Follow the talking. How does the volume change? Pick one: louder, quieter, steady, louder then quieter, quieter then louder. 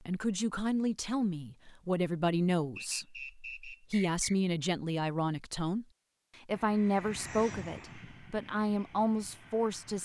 steady.